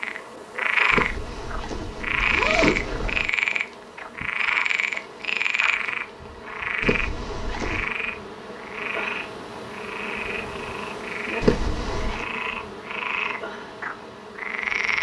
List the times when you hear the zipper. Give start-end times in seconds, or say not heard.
0.9-3.3, 6.8-7.9, 11.4-12.2.